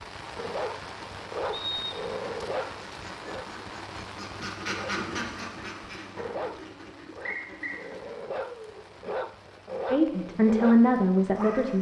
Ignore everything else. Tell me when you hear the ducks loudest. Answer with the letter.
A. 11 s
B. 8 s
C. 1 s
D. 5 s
D.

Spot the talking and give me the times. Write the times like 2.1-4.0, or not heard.
9.9-11.7.